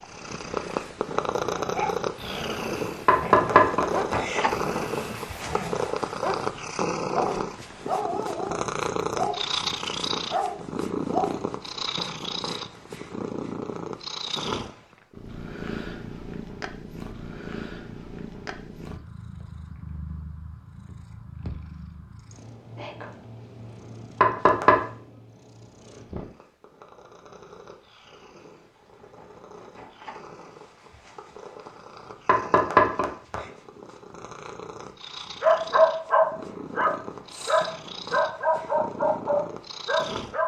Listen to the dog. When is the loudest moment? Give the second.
36 s.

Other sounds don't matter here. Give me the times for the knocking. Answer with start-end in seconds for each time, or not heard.
3.0-4.5, 24.2-24.8, 32.2-33.4.